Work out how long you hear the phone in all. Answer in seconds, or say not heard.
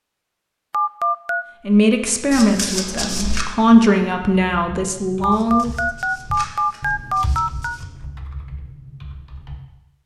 3 s.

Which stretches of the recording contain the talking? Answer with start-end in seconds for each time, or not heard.
1.6-5.7.